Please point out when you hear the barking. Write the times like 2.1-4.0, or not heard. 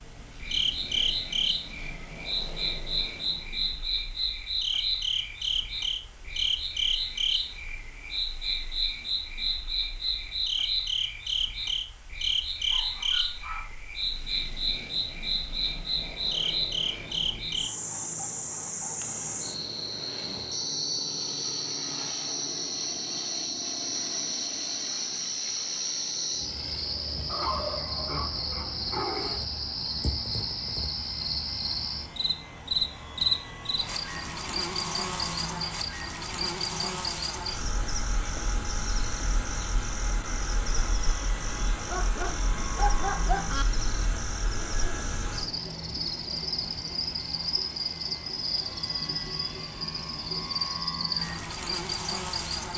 12.6-13.9, 27.2-29.4, 41.8-43.6.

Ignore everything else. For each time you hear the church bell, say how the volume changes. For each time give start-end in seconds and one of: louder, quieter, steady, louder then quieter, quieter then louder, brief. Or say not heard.
not heard.